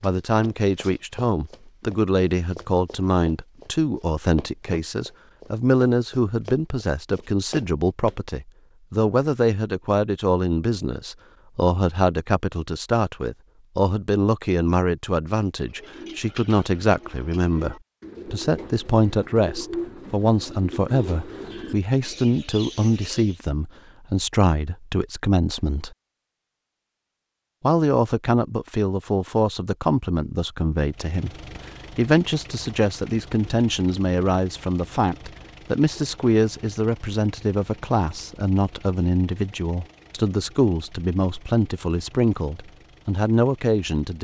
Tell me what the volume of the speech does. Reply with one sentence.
The volume of the speech stays about the same.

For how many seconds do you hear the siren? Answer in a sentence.
You can't hear the siren here.